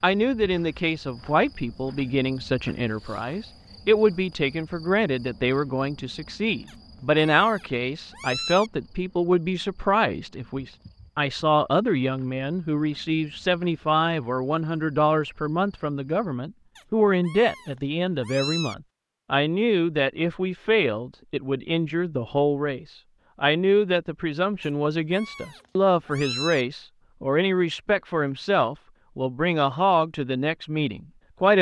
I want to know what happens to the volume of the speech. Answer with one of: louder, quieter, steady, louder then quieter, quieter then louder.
steady.